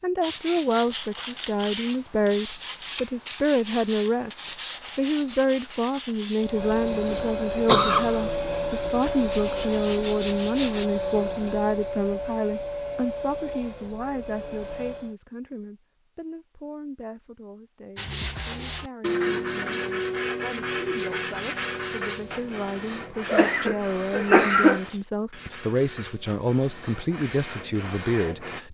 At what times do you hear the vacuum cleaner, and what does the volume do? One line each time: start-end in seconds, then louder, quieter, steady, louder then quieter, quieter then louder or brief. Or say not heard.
6.3-15.2 quieter.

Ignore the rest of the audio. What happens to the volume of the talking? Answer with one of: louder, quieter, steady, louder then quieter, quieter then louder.
quieter then louder.